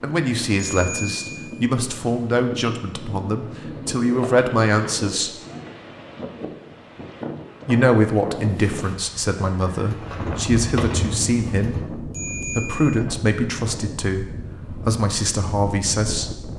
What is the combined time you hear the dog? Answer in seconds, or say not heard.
not heard.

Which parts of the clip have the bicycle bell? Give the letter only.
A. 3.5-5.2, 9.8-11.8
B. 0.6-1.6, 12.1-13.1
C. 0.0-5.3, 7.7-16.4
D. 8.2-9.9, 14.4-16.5
B.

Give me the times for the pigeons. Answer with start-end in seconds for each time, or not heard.
3.5-5.2, 9.8-11.8.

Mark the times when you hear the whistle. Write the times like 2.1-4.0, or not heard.
not heard.